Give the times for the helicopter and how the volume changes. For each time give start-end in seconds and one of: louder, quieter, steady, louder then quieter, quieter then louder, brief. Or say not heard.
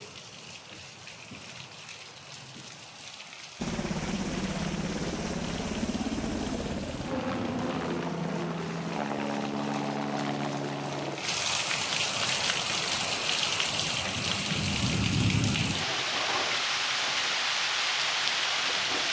3.5-13.9 quieter.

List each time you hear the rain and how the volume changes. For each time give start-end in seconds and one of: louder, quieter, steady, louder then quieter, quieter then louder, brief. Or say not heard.
0.0-19.0 louder.